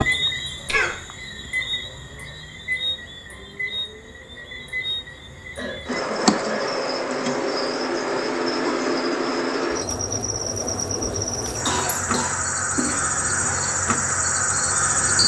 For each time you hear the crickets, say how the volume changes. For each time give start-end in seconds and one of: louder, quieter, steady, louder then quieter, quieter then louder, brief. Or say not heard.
0.0-15.2 louder.